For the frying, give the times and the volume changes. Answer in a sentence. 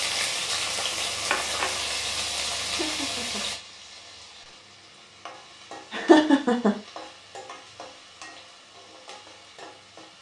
The frying can be heard from 0.0 to 10.1 s, getting quieter.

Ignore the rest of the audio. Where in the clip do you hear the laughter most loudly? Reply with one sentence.
The volume of the laughter peaks at 6 seconds.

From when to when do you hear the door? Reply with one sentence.
The door can't be heard in this clip.